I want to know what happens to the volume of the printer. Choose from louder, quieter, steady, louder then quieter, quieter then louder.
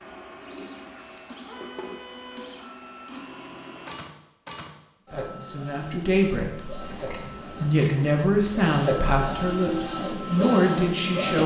louder.